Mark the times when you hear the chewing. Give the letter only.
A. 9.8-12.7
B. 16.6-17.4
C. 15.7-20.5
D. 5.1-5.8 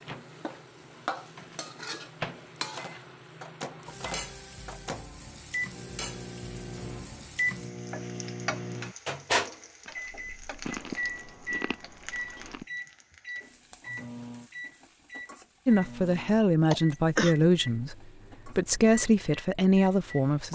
A.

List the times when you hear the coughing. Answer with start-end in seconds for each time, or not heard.
16.6-17.4.